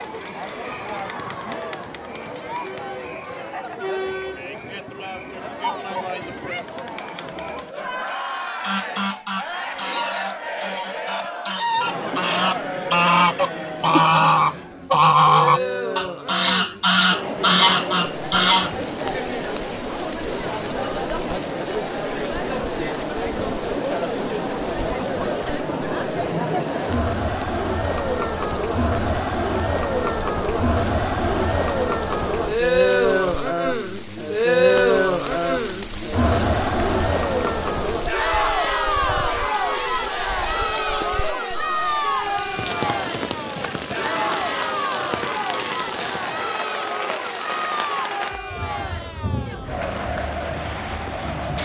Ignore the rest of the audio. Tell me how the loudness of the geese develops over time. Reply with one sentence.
The loudness of the geese goes up.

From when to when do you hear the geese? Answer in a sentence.
You can hear the geese from 8.6 to 18.7 s.